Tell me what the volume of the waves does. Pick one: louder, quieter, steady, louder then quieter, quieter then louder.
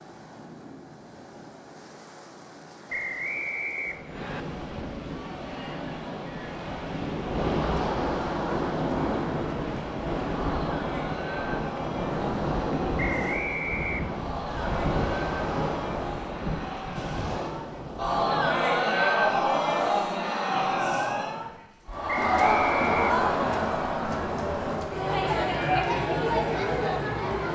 louder.